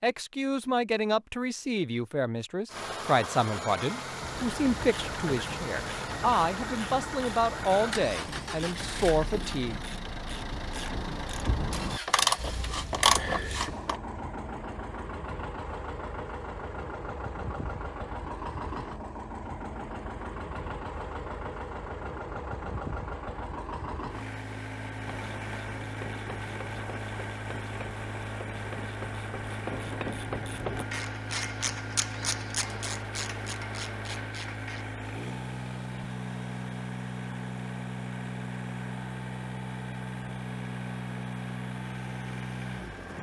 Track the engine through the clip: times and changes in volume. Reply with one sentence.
The engine can be heard from 2.6 to 43.1 s, at a steady volume.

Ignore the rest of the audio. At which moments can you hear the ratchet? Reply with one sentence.
The ratchet can be heard from 4.2 to 14.0 s and from 25.1 to 34.9 s.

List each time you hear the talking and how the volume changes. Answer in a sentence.
You can hear the talking from 0.0 to 9.8 s, at a steady volume.